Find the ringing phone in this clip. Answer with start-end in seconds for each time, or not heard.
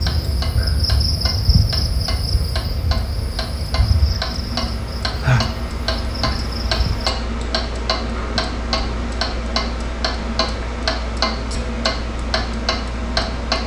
not heard.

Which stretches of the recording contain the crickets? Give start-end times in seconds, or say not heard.
0.0-7.2.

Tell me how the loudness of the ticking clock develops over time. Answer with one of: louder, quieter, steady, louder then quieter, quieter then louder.
louder.